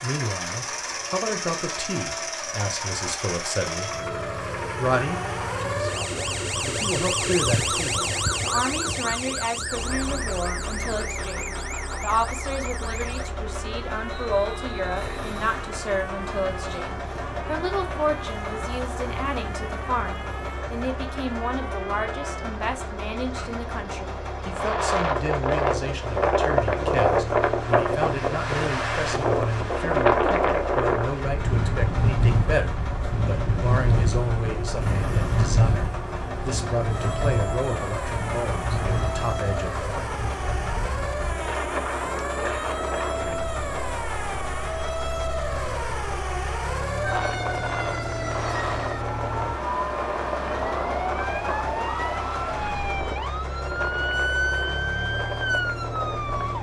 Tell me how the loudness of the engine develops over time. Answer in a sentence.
The volume of the engine stays about the same.